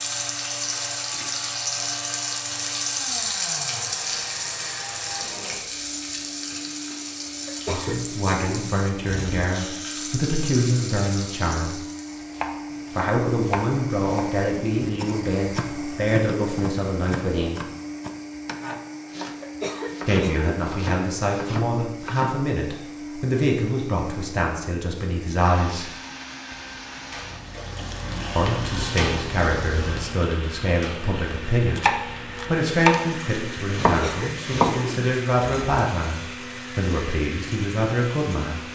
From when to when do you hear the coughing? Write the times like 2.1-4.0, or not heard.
7.5-9.4, 19.4-20.6, 33.9-35.6.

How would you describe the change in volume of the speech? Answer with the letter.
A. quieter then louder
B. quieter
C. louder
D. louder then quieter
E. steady
E.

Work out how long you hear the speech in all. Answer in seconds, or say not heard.
25 s.